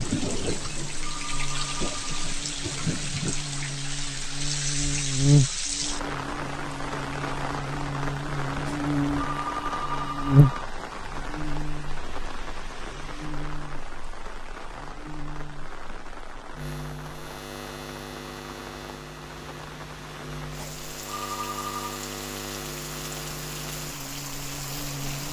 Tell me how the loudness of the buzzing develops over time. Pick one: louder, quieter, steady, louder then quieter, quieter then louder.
quieter.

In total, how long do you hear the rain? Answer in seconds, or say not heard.
25 s.